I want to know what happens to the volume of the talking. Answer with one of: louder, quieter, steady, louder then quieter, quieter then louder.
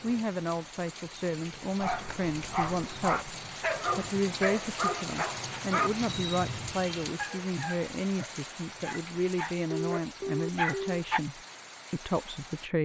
steady.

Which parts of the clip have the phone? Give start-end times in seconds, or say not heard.
9.7-11.0.